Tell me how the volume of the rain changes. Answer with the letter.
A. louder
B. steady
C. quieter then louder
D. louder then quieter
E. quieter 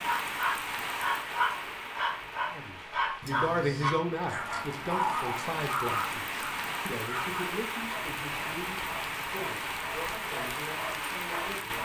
C.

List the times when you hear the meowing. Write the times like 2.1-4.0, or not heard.
not heard.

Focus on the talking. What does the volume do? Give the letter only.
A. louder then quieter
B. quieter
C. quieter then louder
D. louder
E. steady
B.